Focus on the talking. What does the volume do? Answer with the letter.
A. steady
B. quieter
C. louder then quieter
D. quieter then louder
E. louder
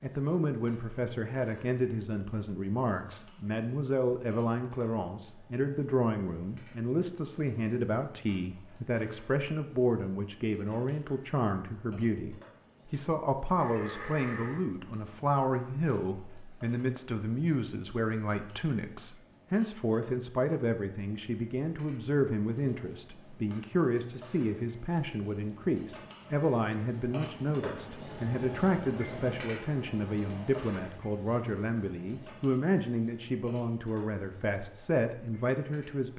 A.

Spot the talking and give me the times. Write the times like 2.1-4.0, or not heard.
0.0-36.1.